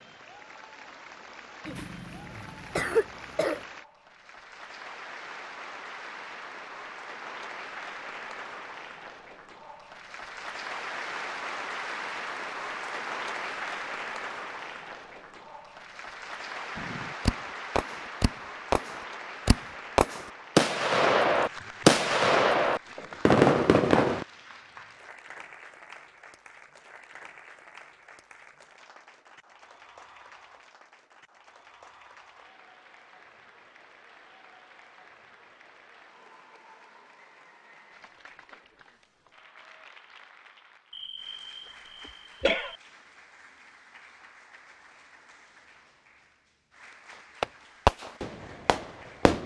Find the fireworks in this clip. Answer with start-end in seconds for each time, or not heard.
16.8-24.2, 47.1-49.4.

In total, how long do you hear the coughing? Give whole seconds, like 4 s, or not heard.
4 s.